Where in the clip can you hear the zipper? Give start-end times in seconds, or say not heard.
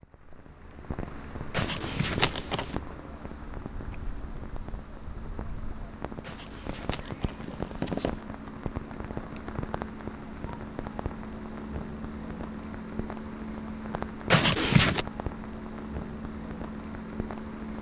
1.5-2.8, 6.2-8.2, 14.3-15.1.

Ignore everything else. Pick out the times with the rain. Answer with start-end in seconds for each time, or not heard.
0.0-17.7.